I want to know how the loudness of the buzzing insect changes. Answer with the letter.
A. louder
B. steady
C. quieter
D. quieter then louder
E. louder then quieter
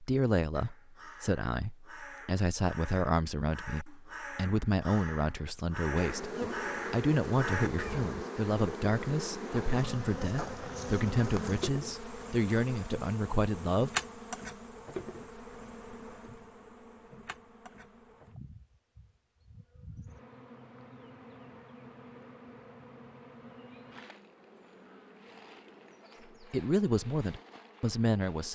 C.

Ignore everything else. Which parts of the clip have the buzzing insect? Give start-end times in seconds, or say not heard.
6.0-28.5.